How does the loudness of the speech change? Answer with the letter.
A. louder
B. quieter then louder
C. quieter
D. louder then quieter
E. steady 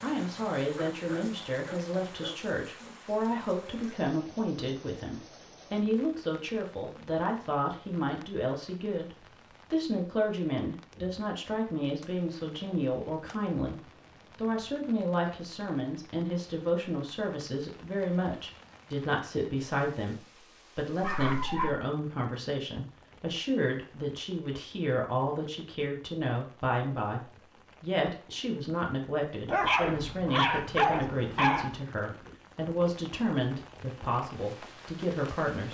E.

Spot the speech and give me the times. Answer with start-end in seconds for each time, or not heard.
0.0-35.6.